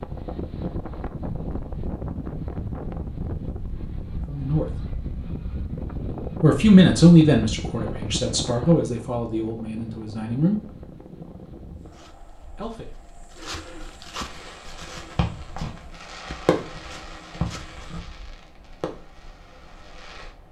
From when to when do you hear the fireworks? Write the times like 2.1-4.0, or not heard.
14.2-20.3.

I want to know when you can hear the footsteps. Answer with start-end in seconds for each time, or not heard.
11.8-18.0.